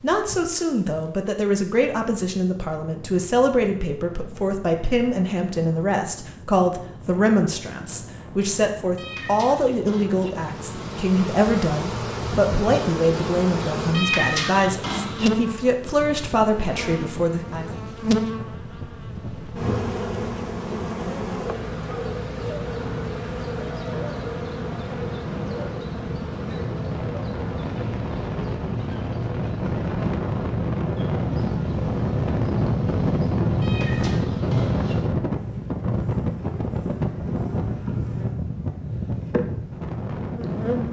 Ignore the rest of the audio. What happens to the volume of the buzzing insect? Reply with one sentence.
The loudness of the buzzing insect goes down.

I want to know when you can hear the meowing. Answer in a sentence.
You can hear the meowing from 8.9 to 10.3 s, from 13.9 to 15.3 s and from 33.6 to 35.0 s.